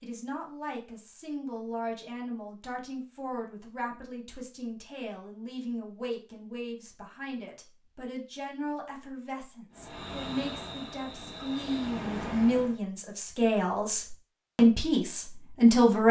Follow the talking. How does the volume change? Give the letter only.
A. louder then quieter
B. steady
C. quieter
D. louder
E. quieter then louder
D.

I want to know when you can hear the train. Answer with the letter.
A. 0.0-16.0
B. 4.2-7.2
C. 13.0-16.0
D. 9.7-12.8
D.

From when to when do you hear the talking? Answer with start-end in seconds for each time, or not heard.
0.0-16.0.